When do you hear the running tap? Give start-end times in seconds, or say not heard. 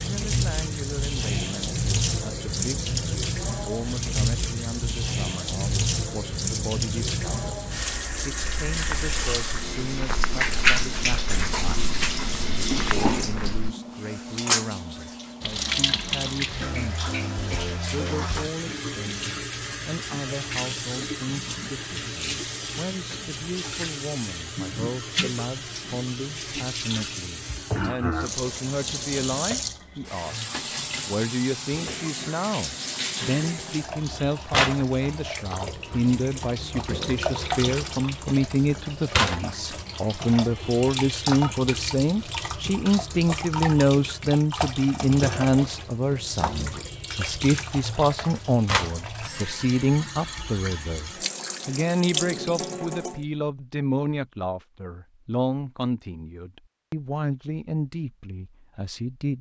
0.0-53.2.